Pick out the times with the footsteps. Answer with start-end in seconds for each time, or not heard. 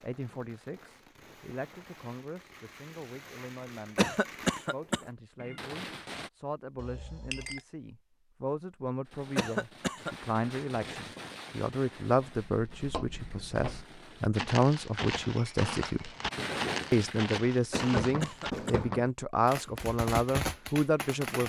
12.2-18.7.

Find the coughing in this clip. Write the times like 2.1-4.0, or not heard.
4.0-5.0, 9.3-10.2, 17.7-18.8.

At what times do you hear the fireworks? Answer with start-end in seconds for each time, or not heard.
0.0-6.3, 9.1-14.3, 16.3-21.4.